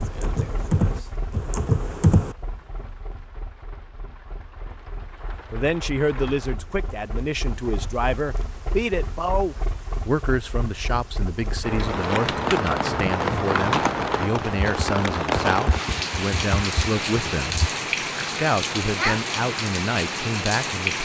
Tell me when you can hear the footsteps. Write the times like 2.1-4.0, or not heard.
not heard.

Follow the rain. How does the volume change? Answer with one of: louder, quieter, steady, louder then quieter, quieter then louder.
louder.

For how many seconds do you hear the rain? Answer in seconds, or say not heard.
21 s.